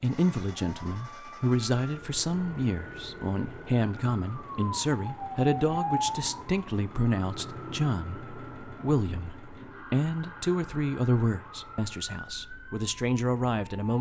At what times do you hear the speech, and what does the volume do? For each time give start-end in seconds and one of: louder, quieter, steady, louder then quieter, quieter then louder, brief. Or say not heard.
0.0-13.9 steady.